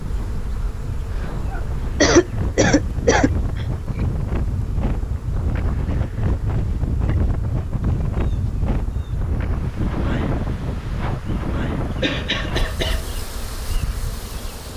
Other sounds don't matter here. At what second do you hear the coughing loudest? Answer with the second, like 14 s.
2 s.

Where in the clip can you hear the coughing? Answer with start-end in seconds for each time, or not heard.
1.5-3.6, 12.0-13.0.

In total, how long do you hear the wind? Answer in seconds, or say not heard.
15 s.